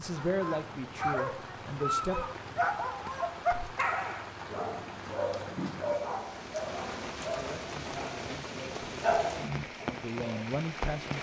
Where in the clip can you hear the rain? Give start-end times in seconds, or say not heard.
0.0-11.1.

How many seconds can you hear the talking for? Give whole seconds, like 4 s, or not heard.
6 s.